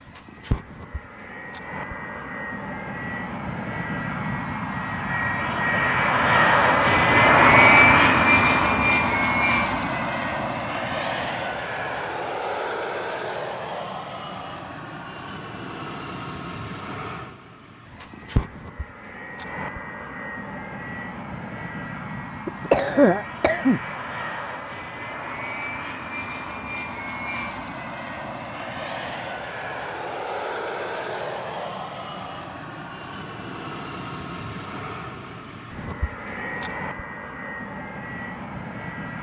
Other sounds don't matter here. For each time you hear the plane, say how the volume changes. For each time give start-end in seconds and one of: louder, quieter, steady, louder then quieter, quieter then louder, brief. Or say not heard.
0.0-39.1 quieter.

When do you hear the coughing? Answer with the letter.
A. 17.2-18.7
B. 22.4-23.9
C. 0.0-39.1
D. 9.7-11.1
B.